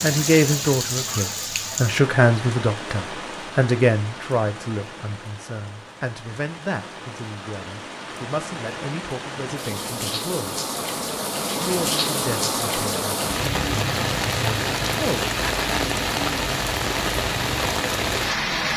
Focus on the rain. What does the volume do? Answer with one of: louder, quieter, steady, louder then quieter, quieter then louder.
quieter then louder.